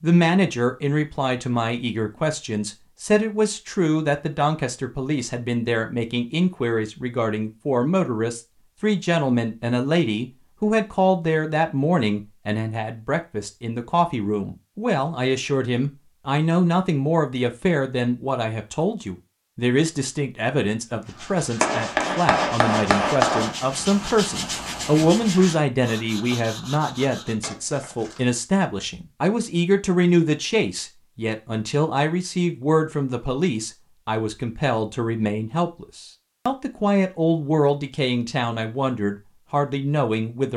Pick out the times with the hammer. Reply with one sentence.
The hammer can be heard from 21.6 to 23.6 s.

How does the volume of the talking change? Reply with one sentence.
The volume of the talking stays about the same.